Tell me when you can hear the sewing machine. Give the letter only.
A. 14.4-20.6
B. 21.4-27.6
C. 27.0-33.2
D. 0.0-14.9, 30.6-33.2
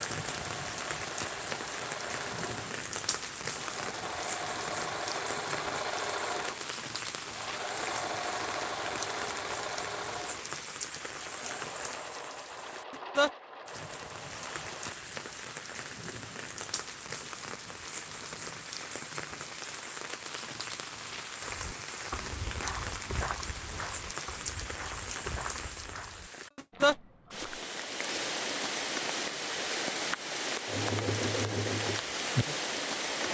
D.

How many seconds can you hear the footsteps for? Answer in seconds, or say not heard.
6 s.